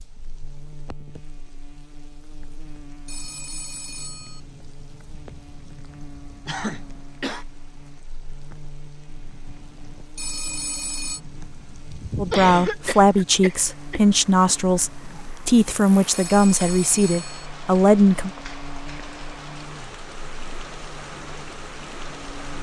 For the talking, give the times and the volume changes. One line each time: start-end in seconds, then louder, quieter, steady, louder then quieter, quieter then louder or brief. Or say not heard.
12.2-18.3 steady.